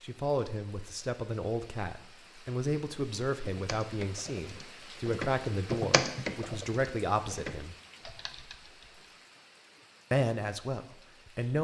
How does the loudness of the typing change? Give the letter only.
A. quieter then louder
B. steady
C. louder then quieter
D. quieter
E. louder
C.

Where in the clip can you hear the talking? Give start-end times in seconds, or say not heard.
0.0-7.8, 10.1-11.6.